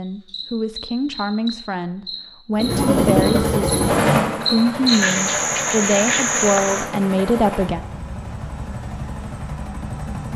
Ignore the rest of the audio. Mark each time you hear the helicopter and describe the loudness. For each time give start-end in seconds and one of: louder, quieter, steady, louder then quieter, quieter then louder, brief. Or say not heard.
2.5-10.3 quieter.